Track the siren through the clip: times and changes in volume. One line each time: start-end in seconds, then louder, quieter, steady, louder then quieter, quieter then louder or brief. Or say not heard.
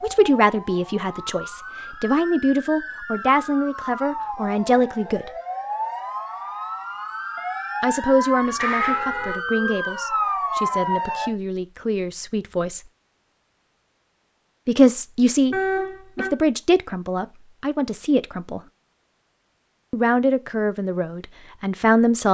0.0-11.3 louder.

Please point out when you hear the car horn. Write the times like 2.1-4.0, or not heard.
8.4-9.3, 15.5-16.3.